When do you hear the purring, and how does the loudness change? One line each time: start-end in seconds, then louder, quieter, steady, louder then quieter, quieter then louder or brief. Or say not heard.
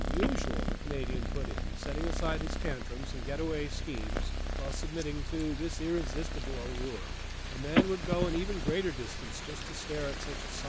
0.0-10.6 quieter.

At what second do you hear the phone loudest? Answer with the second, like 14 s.
8 s.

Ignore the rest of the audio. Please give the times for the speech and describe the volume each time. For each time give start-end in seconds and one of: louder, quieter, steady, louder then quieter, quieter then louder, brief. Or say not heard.
0.0-10.6 steady.